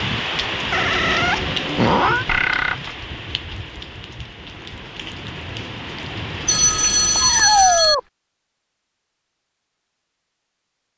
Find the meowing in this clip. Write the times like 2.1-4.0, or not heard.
0.7-2.2, 7.1-8.0.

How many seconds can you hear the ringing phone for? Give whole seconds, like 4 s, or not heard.
2 s.